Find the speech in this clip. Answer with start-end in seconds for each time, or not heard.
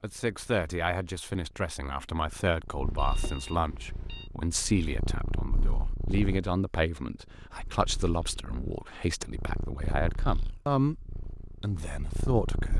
0.0-12.7.